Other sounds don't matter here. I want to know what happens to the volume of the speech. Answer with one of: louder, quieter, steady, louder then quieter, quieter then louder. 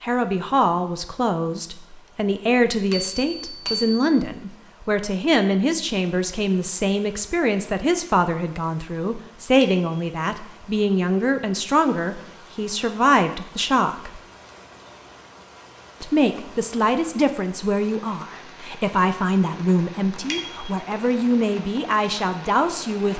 steady.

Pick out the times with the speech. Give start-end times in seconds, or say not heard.
0.0-14.2, 16.0-23.1.